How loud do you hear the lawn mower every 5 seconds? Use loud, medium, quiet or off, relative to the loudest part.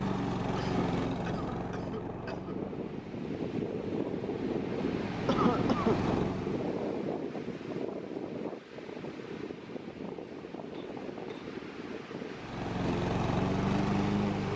medium, medium, loud.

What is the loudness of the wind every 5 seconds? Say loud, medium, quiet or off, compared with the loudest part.
loud, loud, medium.